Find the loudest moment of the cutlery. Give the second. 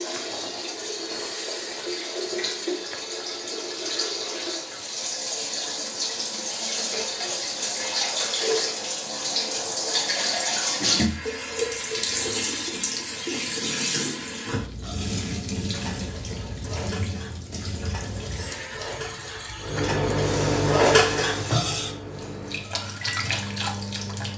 21 s.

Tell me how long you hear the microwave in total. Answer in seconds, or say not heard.
5 s.